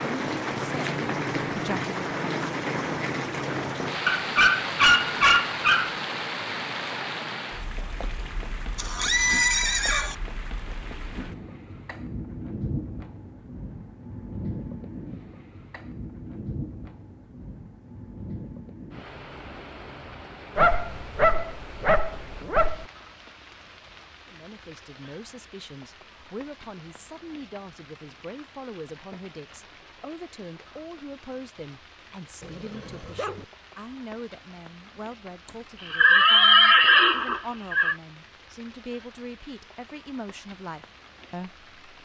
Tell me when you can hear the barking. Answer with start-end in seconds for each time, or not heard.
4.0-6.0, 20.6-22.9, 32.4-33.5.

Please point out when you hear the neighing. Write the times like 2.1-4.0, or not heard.
8.8-10.2, 35.5-38.0.